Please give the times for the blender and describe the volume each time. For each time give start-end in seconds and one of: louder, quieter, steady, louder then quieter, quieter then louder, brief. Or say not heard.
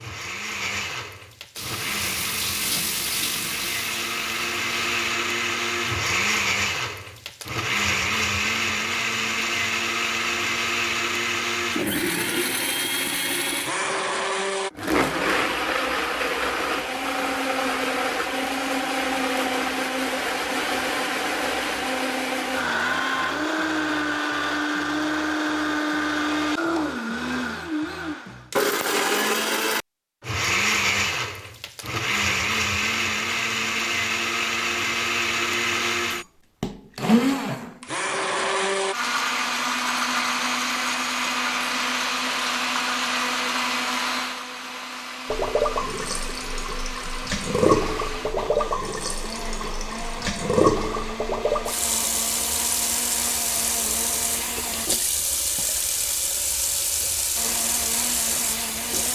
0.0-54.9 quieter
57.4-59.1 brief.